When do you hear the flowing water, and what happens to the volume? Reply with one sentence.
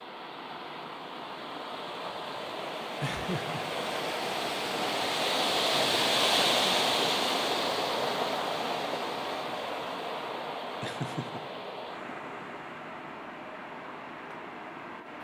You can hear the flowing water from 0.0 to 15.1 s, getting louder then quieter.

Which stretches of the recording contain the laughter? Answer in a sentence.
The laughter can be heard from 3.0 to 3.7 s and from 10.8 to 11.6 s.